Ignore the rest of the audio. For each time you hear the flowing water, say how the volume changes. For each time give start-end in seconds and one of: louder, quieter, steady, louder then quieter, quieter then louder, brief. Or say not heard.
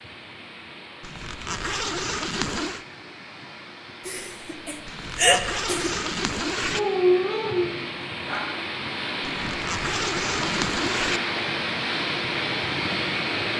0.0-13.5 louder.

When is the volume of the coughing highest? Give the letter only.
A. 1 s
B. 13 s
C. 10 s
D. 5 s
D.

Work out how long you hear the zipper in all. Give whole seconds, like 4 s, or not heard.
6 s.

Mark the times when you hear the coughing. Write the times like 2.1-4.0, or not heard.
4.0-6.0.